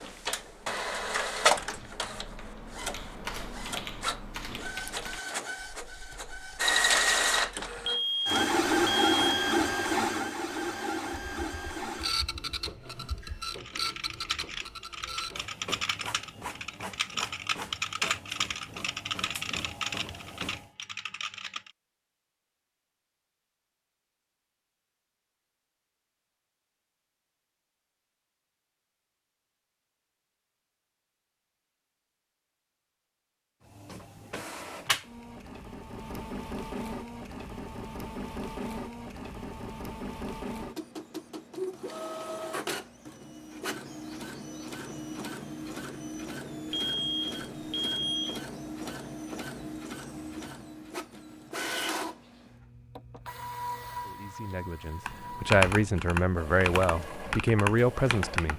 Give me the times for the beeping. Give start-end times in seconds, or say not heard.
7.8-9.6, 46.7-48.4.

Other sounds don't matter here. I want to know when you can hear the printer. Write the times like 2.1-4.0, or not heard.
0.0-20.7, 33.6-58.5.